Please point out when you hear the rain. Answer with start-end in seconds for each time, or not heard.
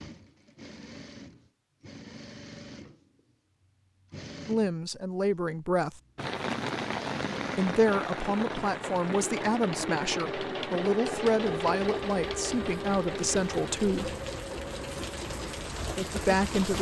6.2-16.7.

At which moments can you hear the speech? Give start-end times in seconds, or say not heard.
4.5-6.0, 7.5-14.2, 16.2-16.7.